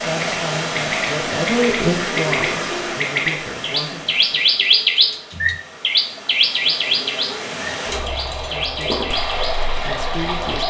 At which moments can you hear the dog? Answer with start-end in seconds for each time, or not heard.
not heard.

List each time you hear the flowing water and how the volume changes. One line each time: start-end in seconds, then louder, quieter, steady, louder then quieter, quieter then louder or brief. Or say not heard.
0.0-10.6 quieter then louder.